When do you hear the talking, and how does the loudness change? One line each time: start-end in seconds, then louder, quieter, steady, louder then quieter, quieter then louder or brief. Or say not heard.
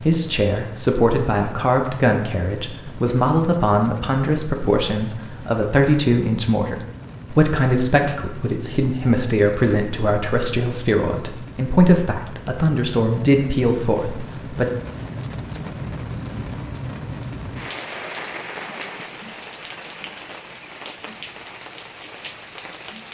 0.0-14.7 steady.